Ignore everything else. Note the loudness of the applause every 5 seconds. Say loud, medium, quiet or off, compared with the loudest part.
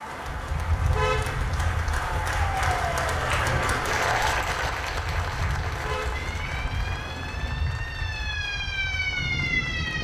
loud, medium.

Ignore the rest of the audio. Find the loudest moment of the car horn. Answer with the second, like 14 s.
1 s.